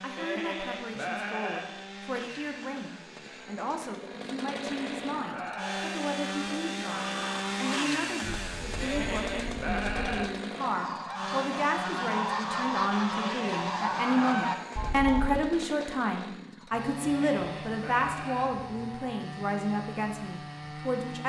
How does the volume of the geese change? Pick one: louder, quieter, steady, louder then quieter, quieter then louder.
louder.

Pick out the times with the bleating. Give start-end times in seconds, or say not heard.
0.1-1.7, 4.5-5.8, 8.8-10.3, 13.1-14.6, 17.0-18.5.